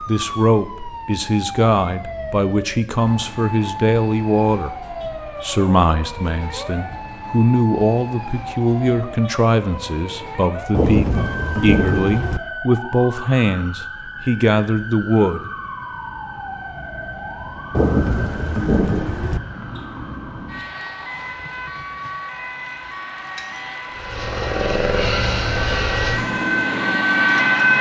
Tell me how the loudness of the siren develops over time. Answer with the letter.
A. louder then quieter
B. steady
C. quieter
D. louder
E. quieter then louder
D.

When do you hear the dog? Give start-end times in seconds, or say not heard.
not heard.